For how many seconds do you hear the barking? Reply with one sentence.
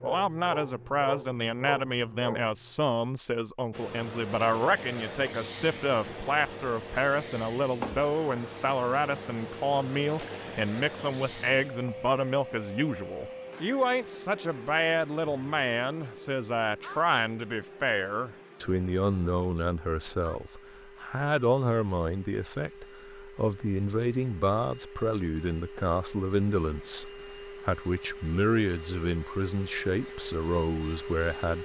The barking can be heard for 3 seconds in total.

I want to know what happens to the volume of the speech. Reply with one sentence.
The loudness of the speech stays about the same.